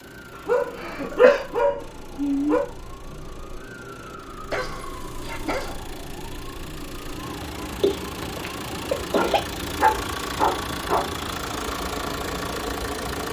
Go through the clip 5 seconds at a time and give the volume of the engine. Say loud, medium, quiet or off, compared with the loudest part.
quiet, medium, loud.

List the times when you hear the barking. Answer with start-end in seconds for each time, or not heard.
0.5-2.6, 4.5-5.8, 9.2-11.2.